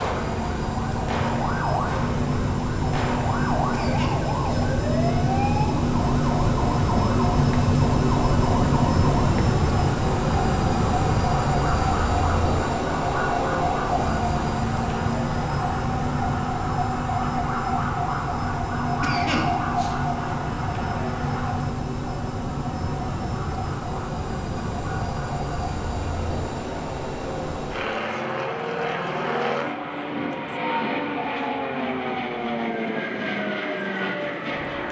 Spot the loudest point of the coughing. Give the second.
19 s.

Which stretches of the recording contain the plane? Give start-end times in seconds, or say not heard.
0.0-34.8.